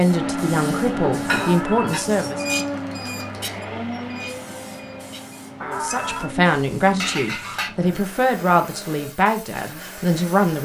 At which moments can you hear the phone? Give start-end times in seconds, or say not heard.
1.2-2.0, 5.6-6.3.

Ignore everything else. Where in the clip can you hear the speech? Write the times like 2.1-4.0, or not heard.
0.0-2.5, 5.6-10.6.